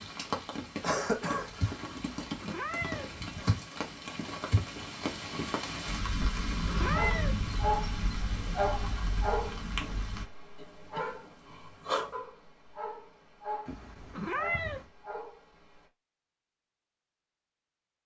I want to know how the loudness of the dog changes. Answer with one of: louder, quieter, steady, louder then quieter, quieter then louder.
quieter.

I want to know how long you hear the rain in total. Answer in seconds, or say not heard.
10 s.